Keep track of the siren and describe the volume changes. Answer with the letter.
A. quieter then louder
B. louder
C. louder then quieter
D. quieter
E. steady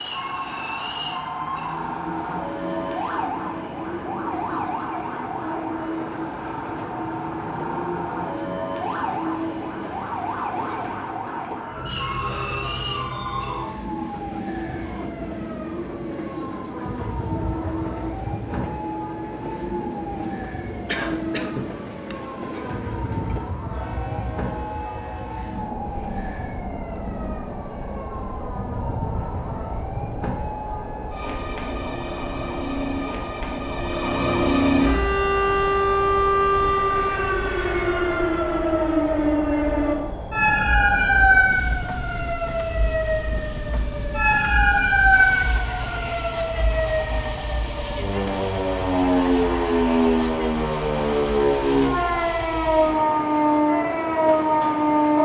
B.